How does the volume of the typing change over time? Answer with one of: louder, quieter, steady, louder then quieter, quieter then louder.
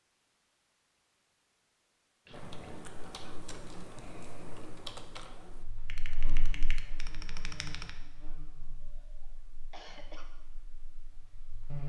steady.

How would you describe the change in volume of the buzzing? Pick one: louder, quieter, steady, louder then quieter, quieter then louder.
quieter.